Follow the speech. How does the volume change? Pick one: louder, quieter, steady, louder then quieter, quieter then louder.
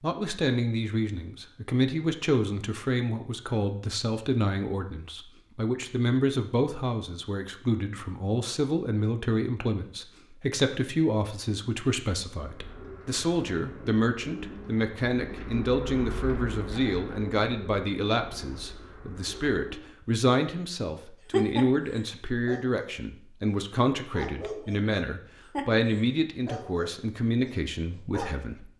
steady.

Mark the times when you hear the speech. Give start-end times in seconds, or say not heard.
0.0-28.7.